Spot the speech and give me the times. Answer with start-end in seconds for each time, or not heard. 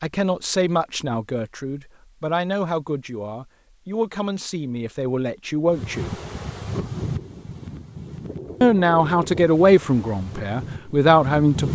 0.0-6.2, 8.6-11.7.